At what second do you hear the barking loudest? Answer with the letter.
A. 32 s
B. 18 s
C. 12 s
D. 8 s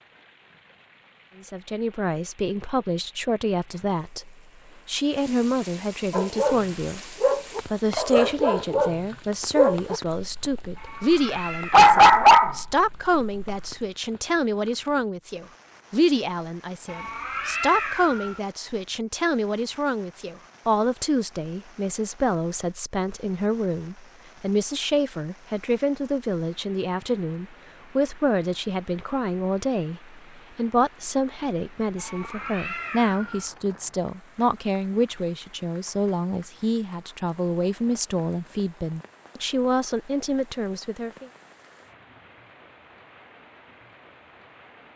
C.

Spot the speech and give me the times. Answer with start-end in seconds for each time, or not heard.
1.4-41.3.